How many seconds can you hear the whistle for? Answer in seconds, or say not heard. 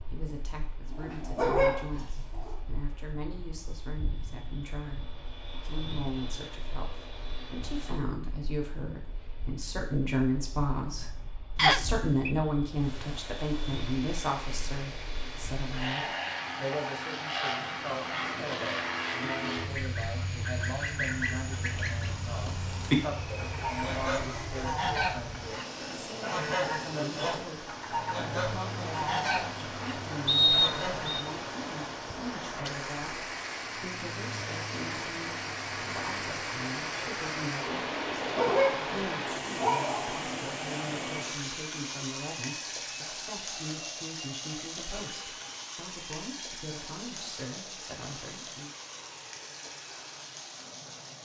2 s.